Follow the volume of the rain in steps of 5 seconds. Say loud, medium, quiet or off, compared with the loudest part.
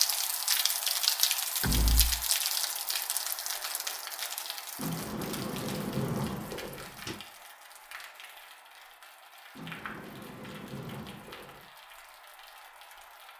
loud, quiet, quiet.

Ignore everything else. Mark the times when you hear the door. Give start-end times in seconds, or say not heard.
1.6-2.2, 4.8-7.2, 9.6-11.7.